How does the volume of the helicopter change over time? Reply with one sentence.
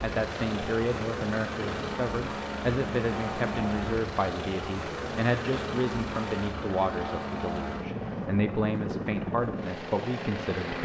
The volume of the helicopter stays about the same.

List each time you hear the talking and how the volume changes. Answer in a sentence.
The talking can be heard from 0.0 to 10.8 s, at a steady volume.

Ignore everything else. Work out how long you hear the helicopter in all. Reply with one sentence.
You can hear the helicopter for 11 seconds altogether.